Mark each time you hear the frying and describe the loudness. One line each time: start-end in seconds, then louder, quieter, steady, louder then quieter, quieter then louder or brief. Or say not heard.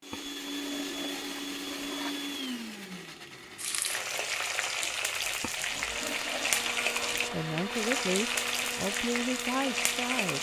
3.5-10.3 steady.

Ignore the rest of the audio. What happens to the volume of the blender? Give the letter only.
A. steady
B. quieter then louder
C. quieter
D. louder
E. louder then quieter
B.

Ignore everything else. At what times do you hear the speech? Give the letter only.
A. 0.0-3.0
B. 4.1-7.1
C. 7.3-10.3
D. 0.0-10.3
C.